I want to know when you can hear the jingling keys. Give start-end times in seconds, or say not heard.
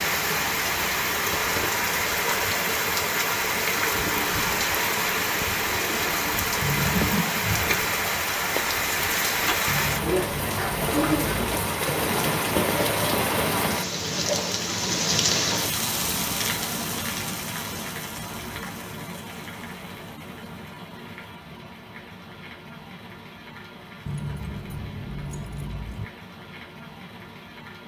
6.6-7.2, 9.7-11.4, 24.1-26.1.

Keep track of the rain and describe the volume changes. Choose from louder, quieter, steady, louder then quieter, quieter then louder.
quieter.